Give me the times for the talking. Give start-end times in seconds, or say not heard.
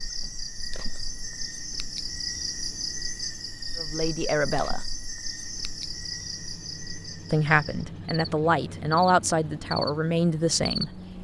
3.8-4.8, 7.3-11.0.